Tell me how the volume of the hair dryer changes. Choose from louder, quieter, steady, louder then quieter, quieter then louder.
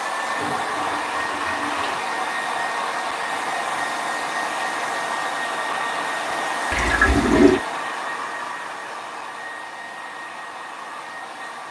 quieter.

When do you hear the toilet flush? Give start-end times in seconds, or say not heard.
0.2-2.0, 6.7-7.6.